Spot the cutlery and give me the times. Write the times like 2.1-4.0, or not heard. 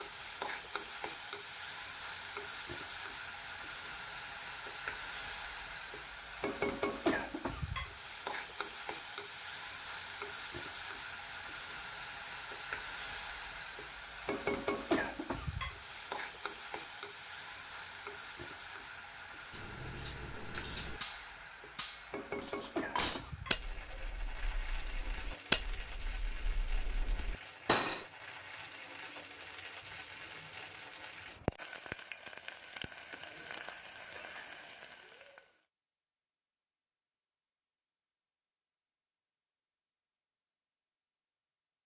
19.5-28.1.